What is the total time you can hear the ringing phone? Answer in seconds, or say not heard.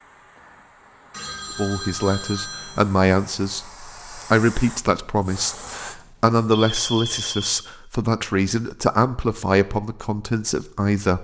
3 s.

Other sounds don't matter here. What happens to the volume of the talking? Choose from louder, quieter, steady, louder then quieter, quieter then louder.
steady.